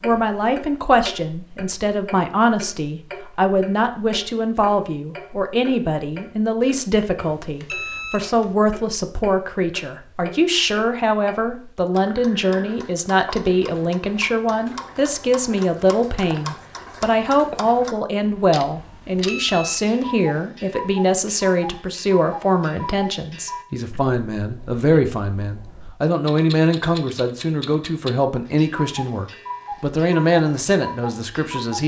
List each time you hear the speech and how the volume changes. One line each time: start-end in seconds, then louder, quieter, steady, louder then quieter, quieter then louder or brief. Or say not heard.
0.0-31.8 steady.